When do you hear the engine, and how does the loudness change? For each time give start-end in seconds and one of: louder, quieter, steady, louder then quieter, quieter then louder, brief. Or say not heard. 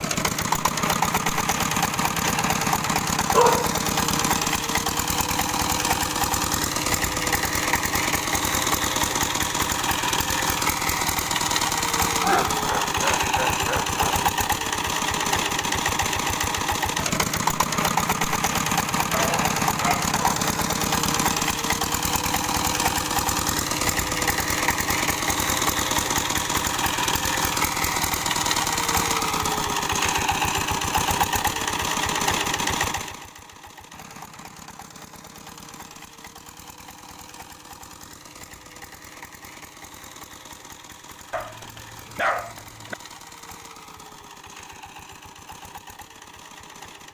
0.0-47.0 quieter.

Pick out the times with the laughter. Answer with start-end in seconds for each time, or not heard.
12.2-14.2.